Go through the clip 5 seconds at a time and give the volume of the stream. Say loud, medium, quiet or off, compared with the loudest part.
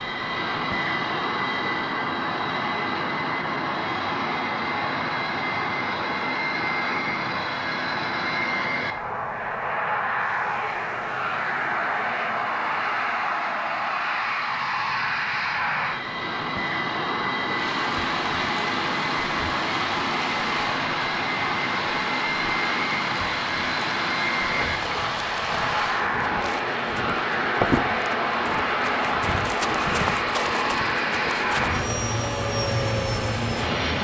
off, off, quiet, loud, loud, loud, loud.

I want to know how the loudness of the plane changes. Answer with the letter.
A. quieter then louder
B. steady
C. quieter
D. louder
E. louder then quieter
B.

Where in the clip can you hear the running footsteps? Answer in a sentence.
The running footsteps can be heard from 24.8 to 31.9 s.